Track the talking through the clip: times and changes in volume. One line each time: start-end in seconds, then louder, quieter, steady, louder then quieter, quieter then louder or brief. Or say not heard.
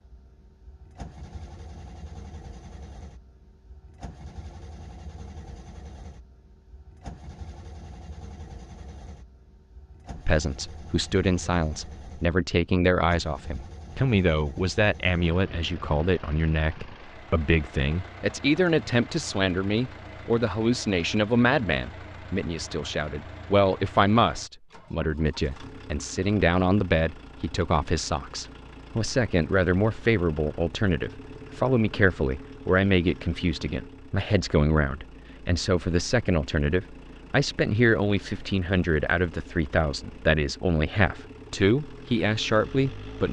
10.2-43.2 steady.